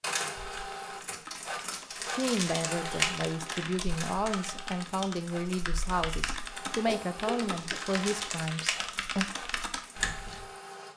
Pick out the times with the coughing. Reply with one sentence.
The coughing can be heard from 6.8 to 7.8 s.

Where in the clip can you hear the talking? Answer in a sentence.
You can hear the talking from 2.1 to 9.2 s.